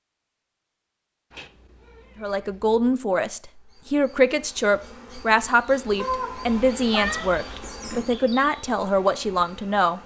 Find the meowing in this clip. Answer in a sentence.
The meowing can be heard from 1.3 to 3.0 s and from 6.0 to 7.3 s.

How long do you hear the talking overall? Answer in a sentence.
You can hear the talking for 8 seconds altogether.